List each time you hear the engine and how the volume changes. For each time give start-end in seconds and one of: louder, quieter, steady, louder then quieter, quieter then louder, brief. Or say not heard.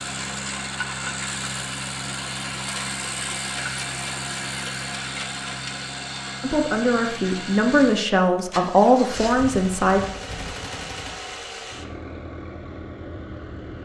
0.0-13.8 quieter.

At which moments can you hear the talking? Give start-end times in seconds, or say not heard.
6.4-10.0.